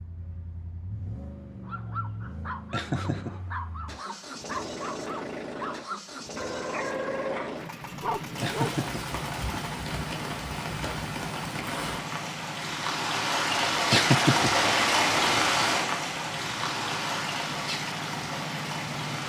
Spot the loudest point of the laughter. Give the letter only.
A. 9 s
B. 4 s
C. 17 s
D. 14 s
D.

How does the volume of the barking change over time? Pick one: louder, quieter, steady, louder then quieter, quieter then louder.
louder.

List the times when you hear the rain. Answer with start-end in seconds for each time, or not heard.
8.3-19.2.